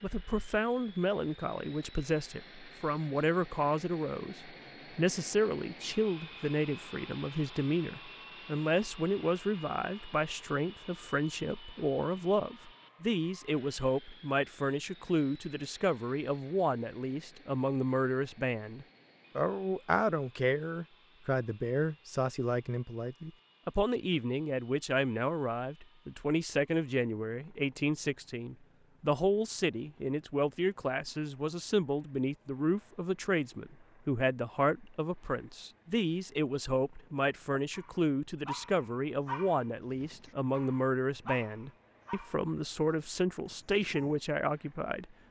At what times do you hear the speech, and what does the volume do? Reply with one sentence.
You can hear the speech from 0.0 to 45.1 s, at a steady volume.